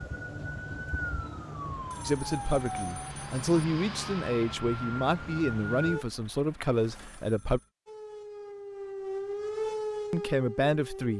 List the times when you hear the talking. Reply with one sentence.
The talking can be heard from 2.0 to 7.6 s and from 10.1 to 11.1 s.